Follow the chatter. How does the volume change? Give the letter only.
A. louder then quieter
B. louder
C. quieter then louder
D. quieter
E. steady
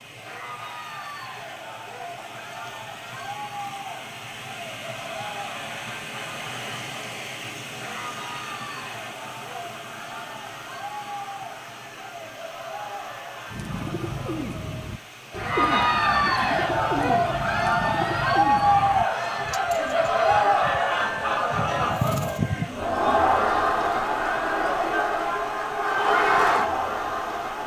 B.